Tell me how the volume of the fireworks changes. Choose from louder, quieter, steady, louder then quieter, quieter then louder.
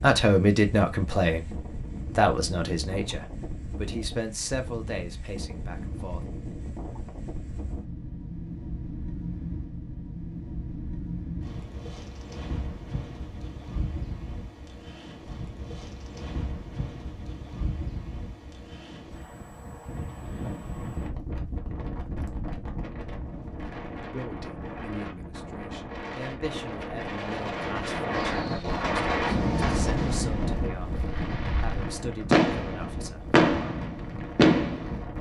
quieter then louder.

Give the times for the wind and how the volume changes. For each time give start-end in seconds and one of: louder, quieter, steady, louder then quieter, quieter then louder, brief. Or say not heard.
0.0-35.1 louder.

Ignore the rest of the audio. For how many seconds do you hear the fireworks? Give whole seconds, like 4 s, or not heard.
7 s.